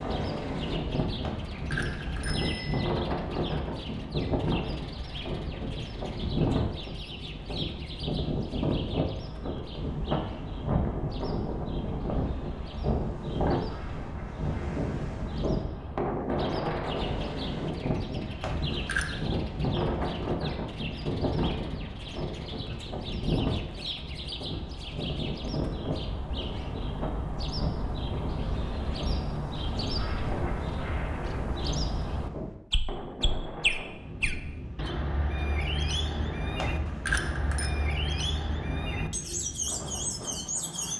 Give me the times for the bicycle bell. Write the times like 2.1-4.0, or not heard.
1.2-2.9, 18.4-19.1, 36.5-37.7.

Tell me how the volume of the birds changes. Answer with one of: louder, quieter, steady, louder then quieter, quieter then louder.
louder.